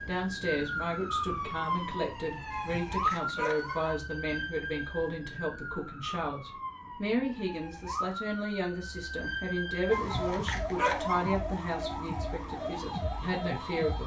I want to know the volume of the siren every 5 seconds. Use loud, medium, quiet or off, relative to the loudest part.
loud, medium, loud.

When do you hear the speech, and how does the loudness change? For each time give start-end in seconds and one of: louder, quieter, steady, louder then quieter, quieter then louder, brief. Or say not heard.
0.1-14.0 steady.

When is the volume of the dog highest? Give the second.
11 s.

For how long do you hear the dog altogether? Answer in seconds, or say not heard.
3 s.